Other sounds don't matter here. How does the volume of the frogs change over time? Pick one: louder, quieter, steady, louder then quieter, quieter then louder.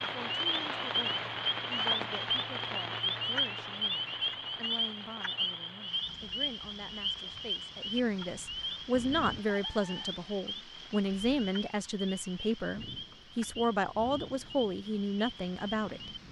quieter.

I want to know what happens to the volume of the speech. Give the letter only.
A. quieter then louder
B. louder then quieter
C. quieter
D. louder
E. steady
D.